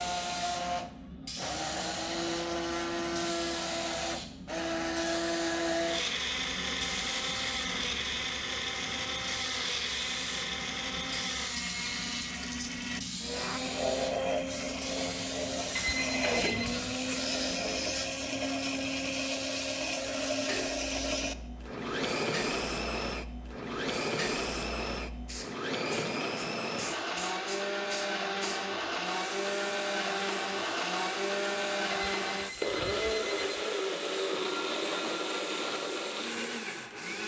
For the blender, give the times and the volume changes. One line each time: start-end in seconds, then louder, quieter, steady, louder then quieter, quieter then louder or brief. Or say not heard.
0.0-37.2 steady.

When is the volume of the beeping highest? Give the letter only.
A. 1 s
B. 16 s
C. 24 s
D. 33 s
B.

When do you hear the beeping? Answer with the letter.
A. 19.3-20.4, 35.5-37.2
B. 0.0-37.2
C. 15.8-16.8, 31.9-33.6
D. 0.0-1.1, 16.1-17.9
C.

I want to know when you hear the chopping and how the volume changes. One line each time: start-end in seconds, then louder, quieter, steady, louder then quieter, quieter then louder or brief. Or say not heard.
not heard.